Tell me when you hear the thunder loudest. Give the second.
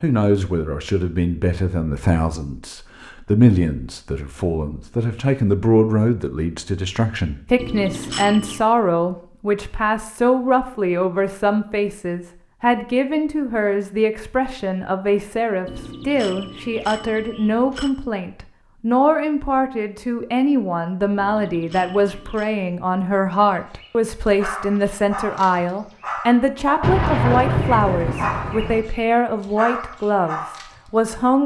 27 s.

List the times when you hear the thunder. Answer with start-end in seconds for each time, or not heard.
26.8-28.8.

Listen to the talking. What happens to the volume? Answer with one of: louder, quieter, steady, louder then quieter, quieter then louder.
steady.